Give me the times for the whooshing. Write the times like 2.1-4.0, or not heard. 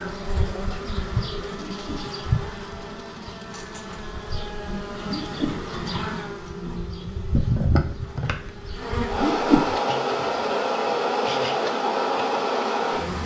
1.7-2.1, 5.1-5.7, 9.2-9.8.